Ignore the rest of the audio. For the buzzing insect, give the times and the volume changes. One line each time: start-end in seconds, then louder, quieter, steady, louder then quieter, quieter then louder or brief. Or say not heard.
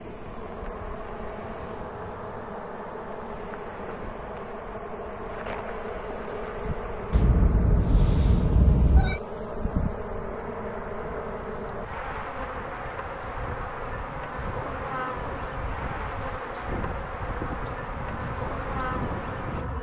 0.0-19.7 steady.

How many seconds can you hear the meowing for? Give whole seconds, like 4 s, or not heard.
2 s.